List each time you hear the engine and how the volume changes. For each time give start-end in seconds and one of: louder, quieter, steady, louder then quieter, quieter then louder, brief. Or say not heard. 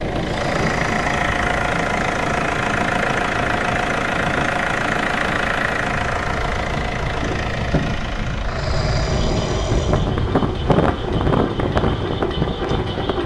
0.0-13.2 quieter.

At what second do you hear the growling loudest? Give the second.
9 s.